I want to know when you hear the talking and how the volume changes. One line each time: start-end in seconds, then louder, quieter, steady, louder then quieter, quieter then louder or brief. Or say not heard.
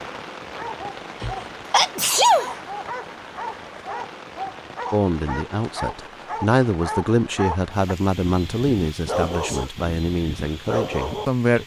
4.9-11.6 louder then quieter.